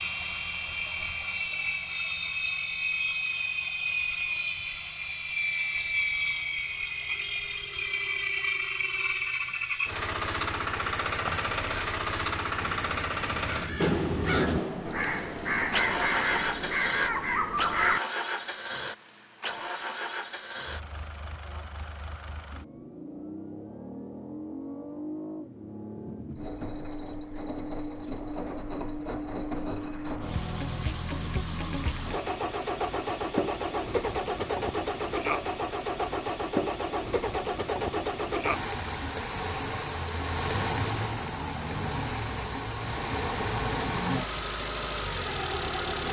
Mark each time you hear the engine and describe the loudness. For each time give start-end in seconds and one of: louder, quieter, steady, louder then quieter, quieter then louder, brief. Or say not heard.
0.0-46.0 quieter then louder.